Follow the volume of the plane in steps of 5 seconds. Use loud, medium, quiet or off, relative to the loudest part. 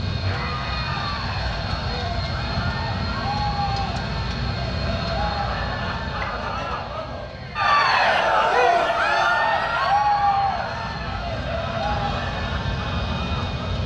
loud, medium, loud.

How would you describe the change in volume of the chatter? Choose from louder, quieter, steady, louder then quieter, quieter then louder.
louder then quieter.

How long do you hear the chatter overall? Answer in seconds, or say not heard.
14 s.